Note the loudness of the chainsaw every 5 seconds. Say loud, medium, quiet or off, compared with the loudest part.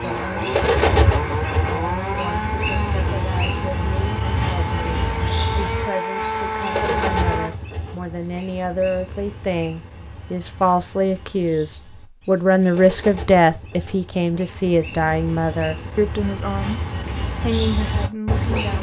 loud, loud, off, off.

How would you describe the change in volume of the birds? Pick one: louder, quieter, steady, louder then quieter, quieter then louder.
quieter then louder.